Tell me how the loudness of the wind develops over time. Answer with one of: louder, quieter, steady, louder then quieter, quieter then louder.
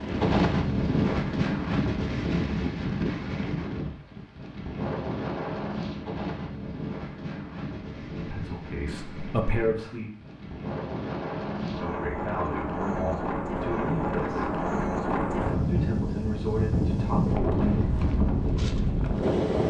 quieter then louder.